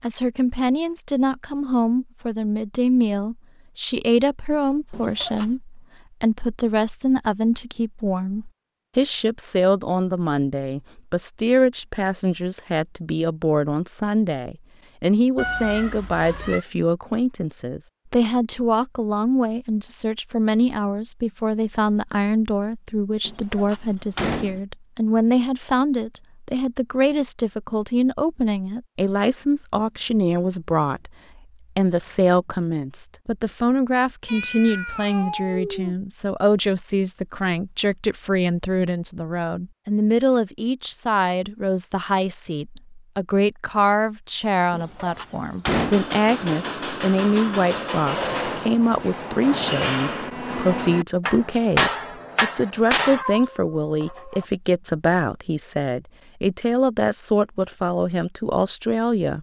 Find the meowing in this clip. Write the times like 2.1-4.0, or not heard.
15.3-16.6, 34.2-36.0, 53.1-54.5.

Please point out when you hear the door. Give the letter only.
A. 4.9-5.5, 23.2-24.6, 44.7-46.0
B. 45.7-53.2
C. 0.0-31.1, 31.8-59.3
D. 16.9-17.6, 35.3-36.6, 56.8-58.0
A.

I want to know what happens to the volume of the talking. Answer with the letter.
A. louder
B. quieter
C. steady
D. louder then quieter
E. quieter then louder
C.